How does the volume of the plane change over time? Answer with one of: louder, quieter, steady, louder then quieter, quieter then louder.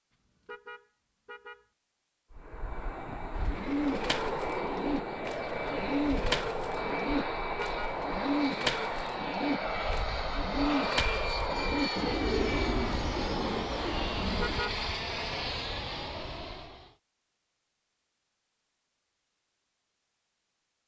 steady.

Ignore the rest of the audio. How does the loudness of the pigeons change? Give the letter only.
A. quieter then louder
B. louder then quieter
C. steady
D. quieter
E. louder
C.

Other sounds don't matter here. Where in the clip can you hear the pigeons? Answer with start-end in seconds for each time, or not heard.
3.4-14.7.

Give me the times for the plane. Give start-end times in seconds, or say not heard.
2.3-16.9.